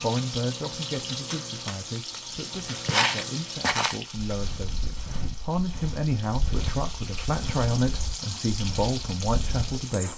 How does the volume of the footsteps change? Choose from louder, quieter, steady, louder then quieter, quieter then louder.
quieter.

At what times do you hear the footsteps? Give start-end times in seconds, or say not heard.
2.6-9.8.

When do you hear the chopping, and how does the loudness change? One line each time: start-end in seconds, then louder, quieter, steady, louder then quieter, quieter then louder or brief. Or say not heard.
not heard.